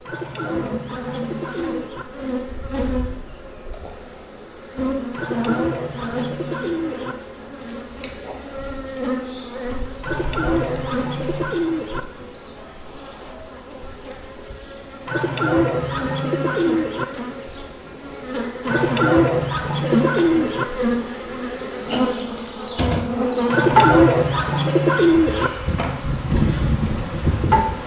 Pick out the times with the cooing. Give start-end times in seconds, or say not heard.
0.1-2.0, 5.1-7.2, 10.0-12.0, 15.1-17.1, 18.6-20.6, 23.5-25.5.